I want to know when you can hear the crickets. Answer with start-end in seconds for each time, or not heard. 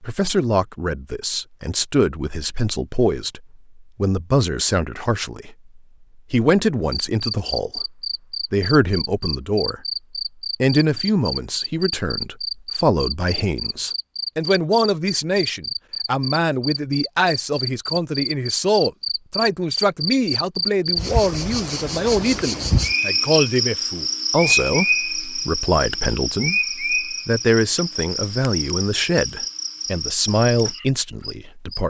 6.9-31.8.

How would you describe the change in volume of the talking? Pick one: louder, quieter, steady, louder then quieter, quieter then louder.
steady.